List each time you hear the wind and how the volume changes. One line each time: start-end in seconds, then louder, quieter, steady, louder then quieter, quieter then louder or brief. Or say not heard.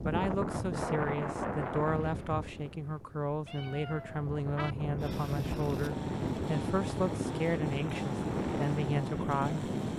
0.0-9.9 quieter then louder.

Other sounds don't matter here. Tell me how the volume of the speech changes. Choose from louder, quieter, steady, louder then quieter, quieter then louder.
steady.